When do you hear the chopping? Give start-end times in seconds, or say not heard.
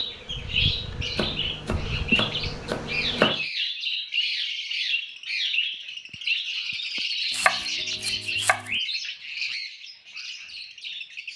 1.1-3.5, 7.3-8.8.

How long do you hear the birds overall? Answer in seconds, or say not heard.
11 s.